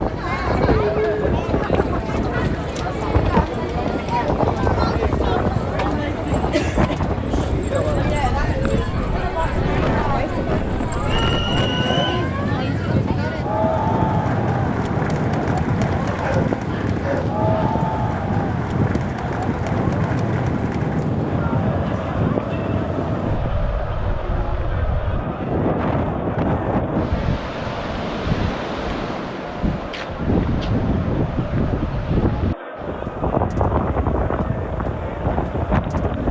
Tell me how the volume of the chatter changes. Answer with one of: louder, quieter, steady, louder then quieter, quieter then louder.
quieter.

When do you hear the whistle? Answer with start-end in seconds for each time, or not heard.
11.1-12.2.